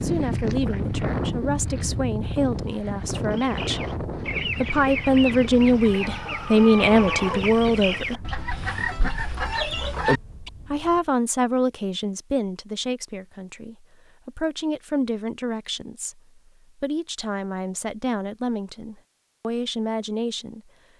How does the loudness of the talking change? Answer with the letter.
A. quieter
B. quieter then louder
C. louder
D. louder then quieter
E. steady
D.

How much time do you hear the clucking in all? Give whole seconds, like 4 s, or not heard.
7 s.